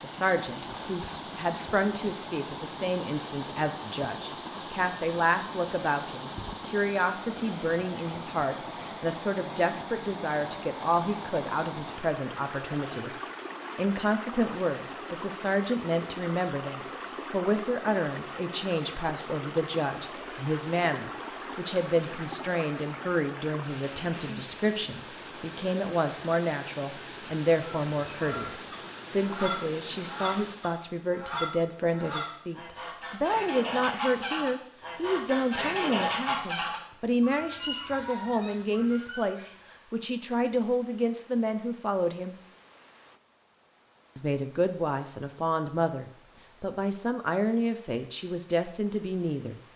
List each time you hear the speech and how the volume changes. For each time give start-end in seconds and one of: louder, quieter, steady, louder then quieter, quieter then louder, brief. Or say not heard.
0.0-13.1 steady
13.8-42.4 steady
44.1-49.5 steady.